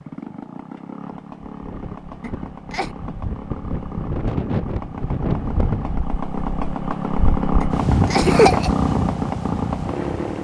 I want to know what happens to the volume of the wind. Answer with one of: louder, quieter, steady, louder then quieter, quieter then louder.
louder.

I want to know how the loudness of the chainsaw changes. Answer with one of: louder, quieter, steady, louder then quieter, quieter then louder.
louder.